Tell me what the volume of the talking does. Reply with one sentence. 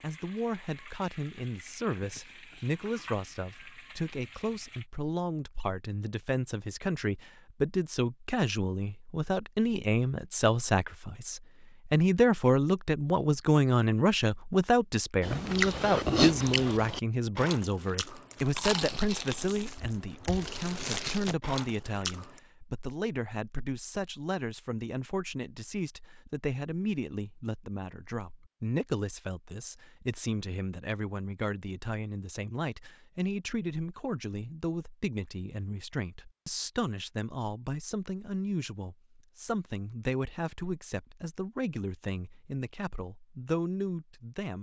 The volume of the talking goes up, then down.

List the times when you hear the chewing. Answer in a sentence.
You can hear the chewing from 15.2 to 22.4 s.